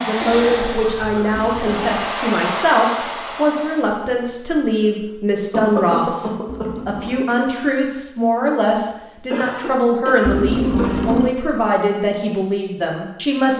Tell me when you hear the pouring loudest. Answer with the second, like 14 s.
11 s.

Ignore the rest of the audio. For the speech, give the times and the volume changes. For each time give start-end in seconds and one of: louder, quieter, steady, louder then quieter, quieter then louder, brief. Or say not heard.
0.0-13.5 steady.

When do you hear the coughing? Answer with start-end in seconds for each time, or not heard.
0.2-1.8, 5.5-7.0, 9.3-11.2.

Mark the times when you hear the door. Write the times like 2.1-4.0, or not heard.
not heard.